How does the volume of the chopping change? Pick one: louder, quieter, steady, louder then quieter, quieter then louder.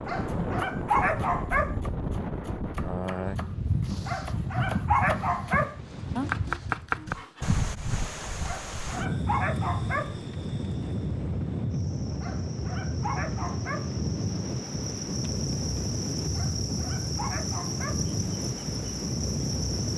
louder.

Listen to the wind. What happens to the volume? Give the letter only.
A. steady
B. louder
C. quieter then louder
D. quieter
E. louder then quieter
A.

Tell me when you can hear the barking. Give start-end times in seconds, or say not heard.
0.1-1.8, 4.0-5.8, 8.4-10.2, 12.2-13.9, 16.4-18.1.